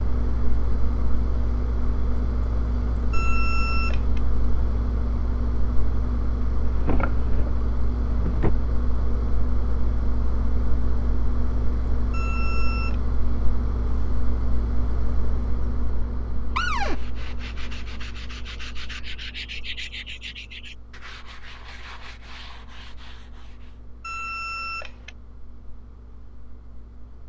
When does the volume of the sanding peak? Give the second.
20 s.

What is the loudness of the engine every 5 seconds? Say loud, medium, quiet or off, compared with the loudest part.
loud, loud, loud, medium, quiet, quiet.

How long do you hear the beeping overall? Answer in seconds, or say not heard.
3 s.